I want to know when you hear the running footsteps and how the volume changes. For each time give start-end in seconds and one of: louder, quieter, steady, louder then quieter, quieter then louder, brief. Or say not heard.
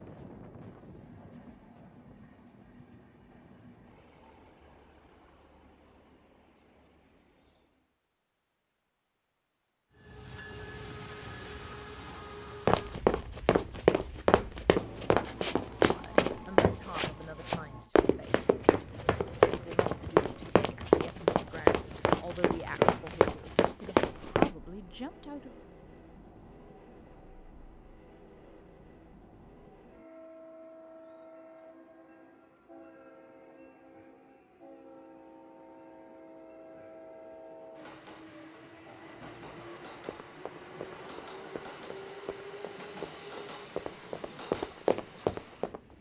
12.7-24.5 steady
39.1-45.9 louder.